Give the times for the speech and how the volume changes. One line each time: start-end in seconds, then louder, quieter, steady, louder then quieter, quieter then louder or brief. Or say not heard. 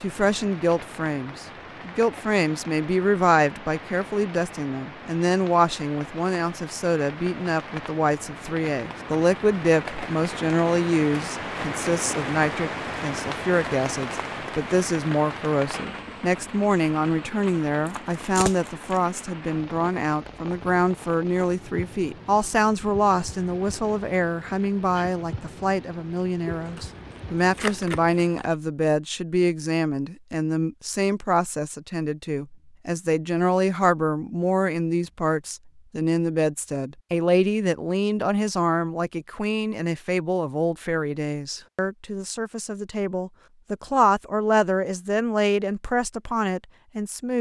0.0-47.3 steady.